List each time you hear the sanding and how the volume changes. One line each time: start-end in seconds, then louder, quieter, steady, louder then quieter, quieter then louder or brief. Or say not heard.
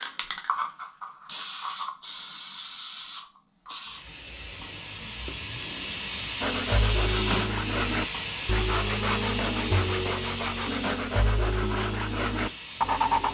6.4-13.3 steady.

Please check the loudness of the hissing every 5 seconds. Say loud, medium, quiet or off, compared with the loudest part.
medium, loud, medium.